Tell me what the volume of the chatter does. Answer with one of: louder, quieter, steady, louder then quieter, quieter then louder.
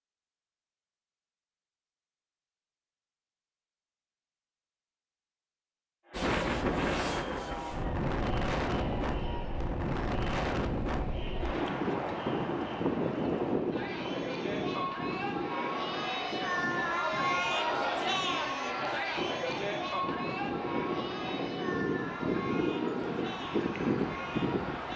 louder then quieter.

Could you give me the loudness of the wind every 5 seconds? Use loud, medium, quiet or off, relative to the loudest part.
off, loud, loud, medium, loud.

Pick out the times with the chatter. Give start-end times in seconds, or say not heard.
6.0-24.9.